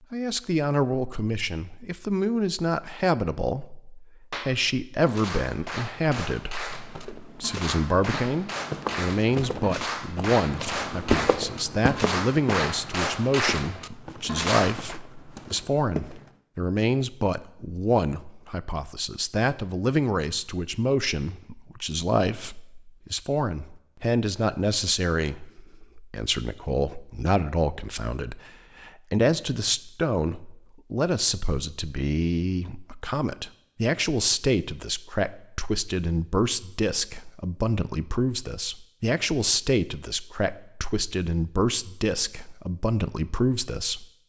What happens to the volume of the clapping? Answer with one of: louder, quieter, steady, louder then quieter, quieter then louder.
louder.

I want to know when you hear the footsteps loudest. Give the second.
11 s.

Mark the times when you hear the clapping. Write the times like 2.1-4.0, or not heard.
4.3-15.0.